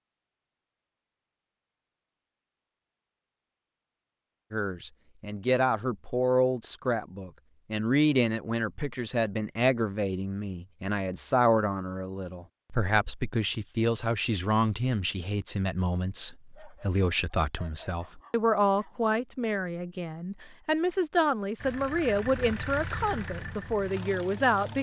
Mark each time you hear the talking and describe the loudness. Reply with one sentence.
You can hear the talking from 4.5 to 24.7 s, at a steady volume.